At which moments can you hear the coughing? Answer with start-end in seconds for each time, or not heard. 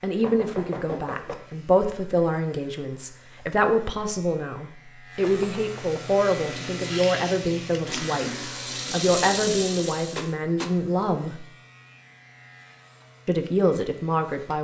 not heard.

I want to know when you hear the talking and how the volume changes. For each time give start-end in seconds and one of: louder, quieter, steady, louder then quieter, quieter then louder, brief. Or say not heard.
0.0-11.4 steady
13.2-14.5 brief.